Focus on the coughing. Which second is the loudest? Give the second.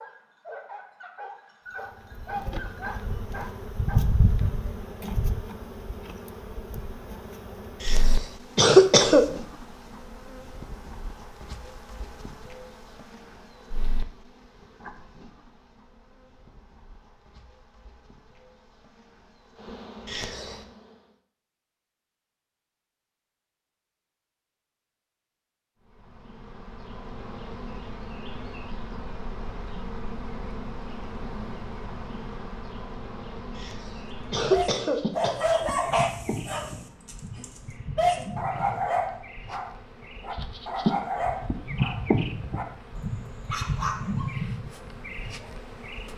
9 s.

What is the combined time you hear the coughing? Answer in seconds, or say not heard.
4 s.